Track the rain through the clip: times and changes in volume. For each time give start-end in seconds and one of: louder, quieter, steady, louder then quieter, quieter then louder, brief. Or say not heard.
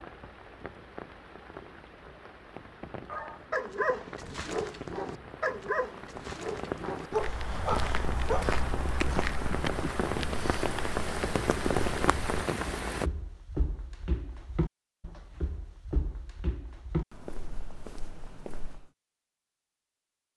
0.0-13.1 louder.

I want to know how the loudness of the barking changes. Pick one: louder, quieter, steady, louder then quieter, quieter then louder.
quieter then louder.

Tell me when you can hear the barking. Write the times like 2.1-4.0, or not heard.
3.1-9.9.